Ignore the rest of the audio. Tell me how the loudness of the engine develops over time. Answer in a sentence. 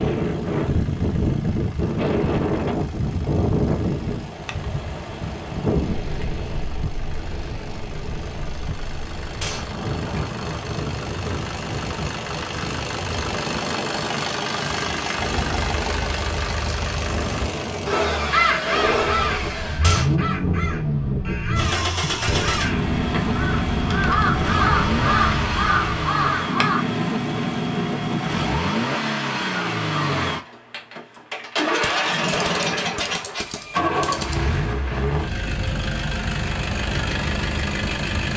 The volume of the engine goes up.